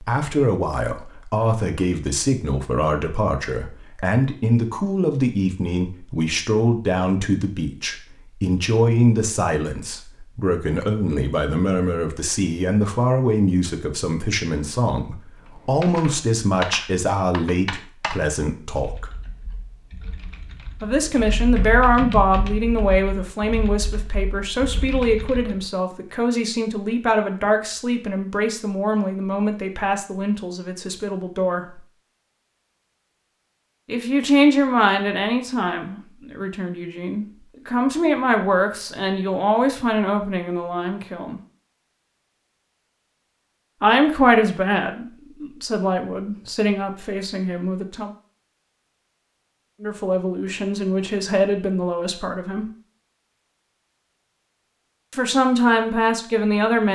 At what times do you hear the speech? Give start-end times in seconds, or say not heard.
0.0-19.1, 20.8-31.8, 33.9-41.4, 43.8-48.1, 49.8-52.6, 55.1-56.9.